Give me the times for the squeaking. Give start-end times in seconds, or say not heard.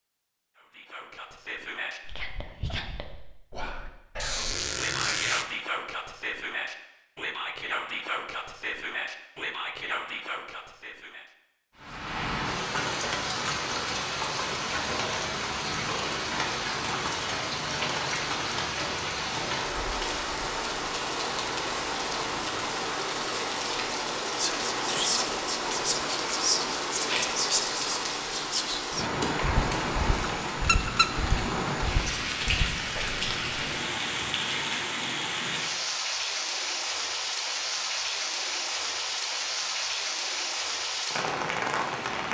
4.2-5.5, 30.6-31.1.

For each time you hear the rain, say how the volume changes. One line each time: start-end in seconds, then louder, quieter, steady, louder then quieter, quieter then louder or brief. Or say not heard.
11.8-42.2 steady.